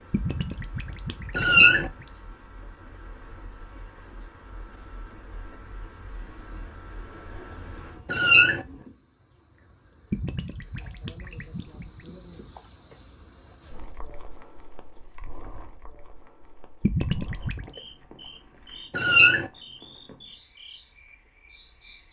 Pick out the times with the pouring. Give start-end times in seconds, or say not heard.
0.1-2.0, 10.1-12.1, 16.8-17.7.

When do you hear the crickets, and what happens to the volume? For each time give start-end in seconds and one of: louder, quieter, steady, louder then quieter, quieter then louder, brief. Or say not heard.
0.0-22.0 louder then quieter.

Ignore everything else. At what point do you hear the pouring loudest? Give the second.
17 s.